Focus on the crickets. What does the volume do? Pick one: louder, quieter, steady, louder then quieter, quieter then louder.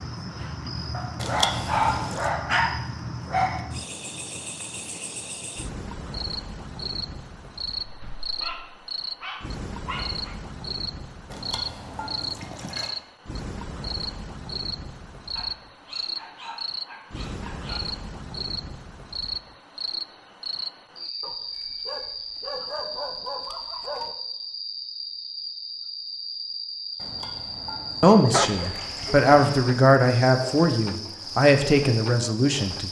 steady.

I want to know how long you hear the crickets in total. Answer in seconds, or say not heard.
33 s.